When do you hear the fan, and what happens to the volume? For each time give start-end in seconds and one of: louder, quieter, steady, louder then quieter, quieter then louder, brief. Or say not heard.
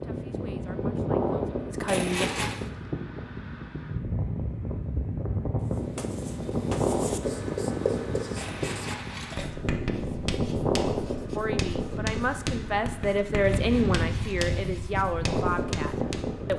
0.0-16.5 steady.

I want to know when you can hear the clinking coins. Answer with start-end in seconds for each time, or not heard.
1.9-2.7, 8.3-9.5, 13.4-14.8.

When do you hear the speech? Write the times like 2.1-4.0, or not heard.
0.0-2.2, 11.3-16.5.